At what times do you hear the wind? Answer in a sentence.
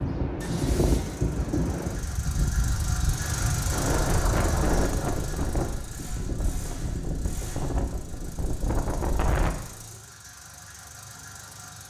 The wind can be heard from 0.0 to 9.5 s.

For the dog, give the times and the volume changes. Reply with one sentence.
You can't hear the dog here.